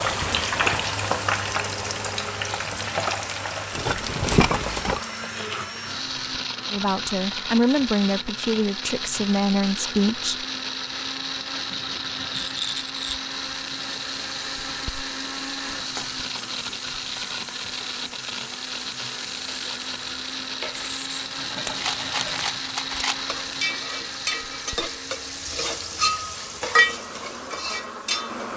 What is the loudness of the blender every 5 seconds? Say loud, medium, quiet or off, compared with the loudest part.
medium, loud, loud, loud, loud, medium.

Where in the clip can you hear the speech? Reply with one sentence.
The speech can be heard from 6.7 to 10.4 s.